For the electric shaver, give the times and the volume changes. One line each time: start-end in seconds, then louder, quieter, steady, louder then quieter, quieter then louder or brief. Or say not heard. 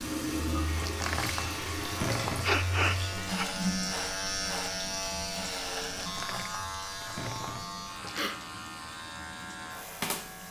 0.0-10.4 louder then quieter.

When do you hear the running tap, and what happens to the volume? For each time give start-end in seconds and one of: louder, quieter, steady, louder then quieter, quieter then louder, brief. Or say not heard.
0.0-10.4 quieter.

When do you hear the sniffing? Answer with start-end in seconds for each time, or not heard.
2.4-3.5, 7.5-8.4.